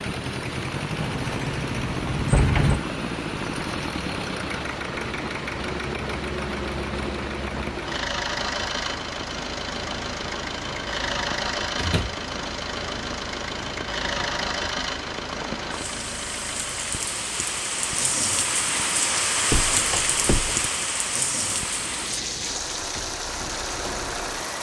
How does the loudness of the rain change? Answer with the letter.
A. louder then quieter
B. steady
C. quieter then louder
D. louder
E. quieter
D.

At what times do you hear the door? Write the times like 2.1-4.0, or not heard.
1.0-2.8, 11.8-12.2, 19.5-20.7.